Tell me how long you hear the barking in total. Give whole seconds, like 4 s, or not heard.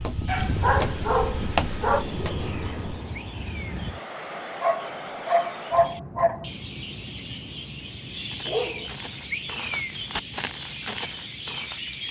4 s.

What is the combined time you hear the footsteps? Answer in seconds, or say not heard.
7 s.